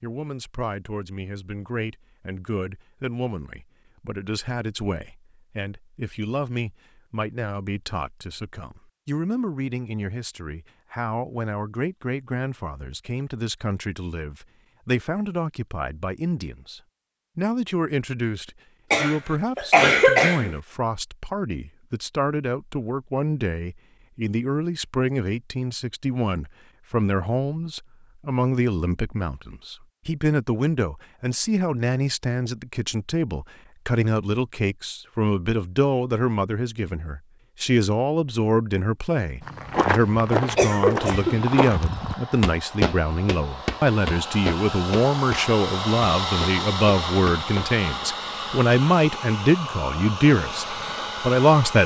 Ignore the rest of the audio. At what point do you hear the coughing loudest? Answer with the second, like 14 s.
20 s.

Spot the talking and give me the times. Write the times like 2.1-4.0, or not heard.
0.0-51.8.